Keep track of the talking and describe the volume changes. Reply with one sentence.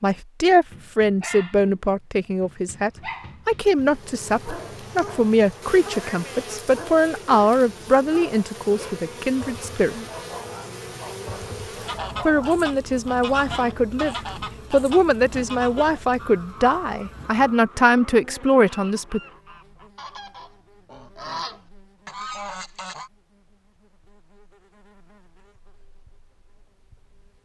The loudness of the talking stays about the same.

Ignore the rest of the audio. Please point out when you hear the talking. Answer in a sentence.
The talking can be heard from 0.0 to 9.9 s and from 12.2 to 19.2 s.